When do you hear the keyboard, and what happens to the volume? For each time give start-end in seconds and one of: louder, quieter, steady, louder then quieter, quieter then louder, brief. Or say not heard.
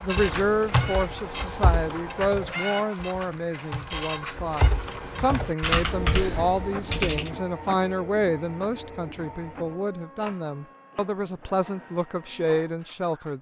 0.0-7.3 quieter then louder.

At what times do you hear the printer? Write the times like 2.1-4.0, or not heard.
0.0-13.3.